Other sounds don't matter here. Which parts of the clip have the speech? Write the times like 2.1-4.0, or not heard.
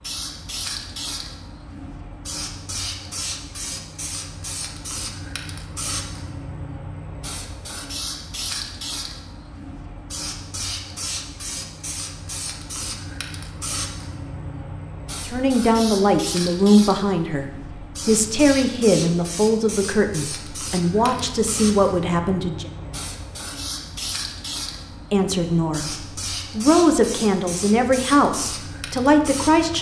15.2-22.7, 25.1-29.7.